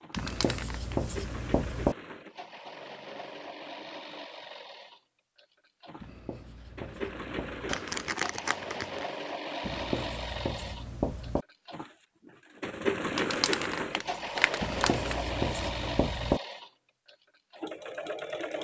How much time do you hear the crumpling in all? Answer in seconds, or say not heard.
4 s.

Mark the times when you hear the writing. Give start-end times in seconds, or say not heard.
0.1-1.9, 6.0-7.8, 9.6-11.4, 14.6-16.4.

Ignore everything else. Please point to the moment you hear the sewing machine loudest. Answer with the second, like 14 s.
13 s.